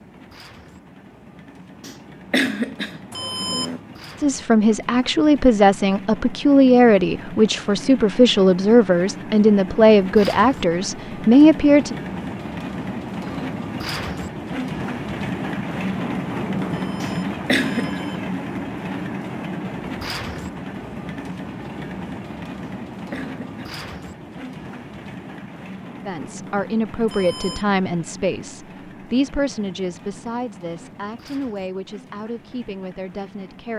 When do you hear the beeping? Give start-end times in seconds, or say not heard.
3.1-3.8, 16.7-18.2, 27.1-27.6.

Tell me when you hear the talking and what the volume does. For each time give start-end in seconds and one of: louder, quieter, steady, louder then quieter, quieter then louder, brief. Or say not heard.
4.2-11.9 steady
26.1-33.7 quieter.